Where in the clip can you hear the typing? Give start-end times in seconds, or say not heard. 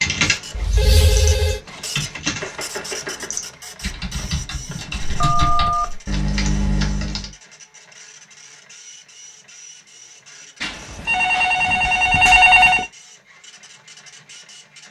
0.0-7.3.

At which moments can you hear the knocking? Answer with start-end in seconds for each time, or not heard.
2.4-3.3.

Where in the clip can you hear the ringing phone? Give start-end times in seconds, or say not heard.
0.5-1.6, 5.2-6.0, 10.6-12.8.